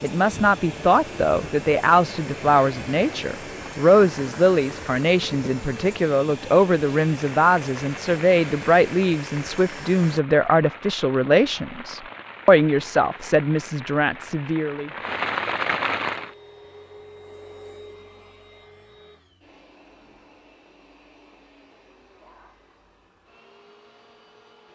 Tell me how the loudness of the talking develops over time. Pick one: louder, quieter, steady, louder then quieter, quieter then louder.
steady.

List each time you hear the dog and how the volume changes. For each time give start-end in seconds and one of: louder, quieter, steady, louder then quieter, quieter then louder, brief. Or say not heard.
not heard.